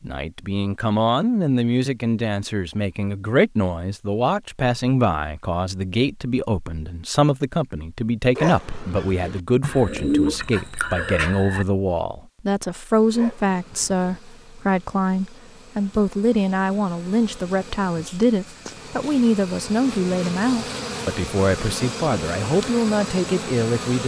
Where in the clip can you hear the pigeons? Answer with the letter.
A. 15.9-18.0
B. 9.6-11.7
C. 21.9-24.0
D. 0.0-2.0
B.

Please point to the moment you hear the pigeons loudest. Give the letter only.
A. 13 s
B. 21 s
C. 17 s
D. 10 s
D.